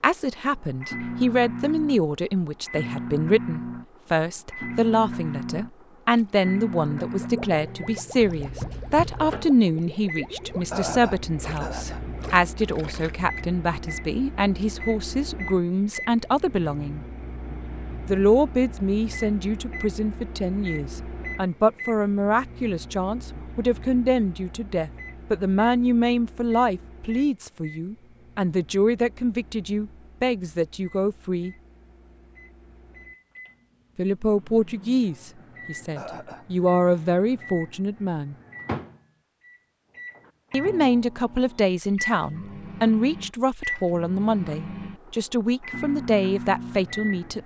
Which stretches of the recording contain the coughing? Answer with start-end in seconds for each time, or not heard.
10.7-12.0, 36.0-36.5.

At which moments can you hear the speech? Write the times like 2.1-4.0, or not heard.
0.0-17.1, 18.1-31.6, 34.0-38.4, 40.5-47.4.